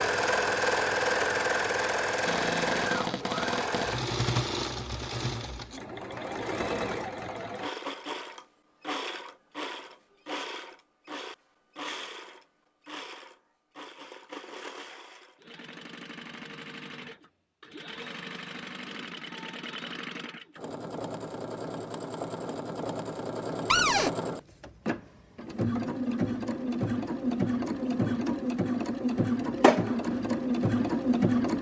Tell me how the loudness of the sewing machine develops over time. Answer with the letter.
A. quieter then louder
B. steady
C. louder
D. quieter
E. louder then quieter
A.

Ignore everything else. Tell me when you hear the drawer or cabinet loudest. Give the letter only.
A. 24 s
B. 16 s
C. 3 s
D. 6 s
A.